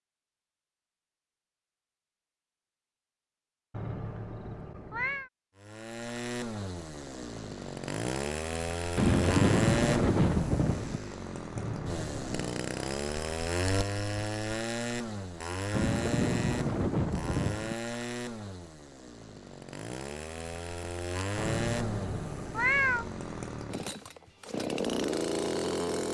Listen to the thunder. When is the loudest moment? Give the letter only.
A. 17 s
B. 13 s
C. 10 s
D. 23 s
C.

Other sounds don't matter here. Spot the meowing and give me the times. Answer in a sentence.
The meowing can be heard from 3.7 to 5.3 s, from 11.6 to 12.5 s and from 21.4 to 23.2 s.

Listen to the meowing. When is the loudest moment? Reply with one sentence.
The loudest moment of the meowing is at 23 seconds.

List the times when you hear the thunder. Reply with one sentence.
You can hear the thunder from 8.9 to 11.0 s and from 15.7 to 17.8 s.